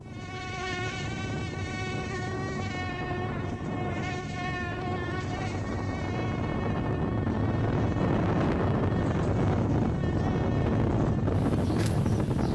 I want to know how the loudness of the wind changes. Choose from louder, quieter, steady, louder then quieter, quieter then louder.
louder.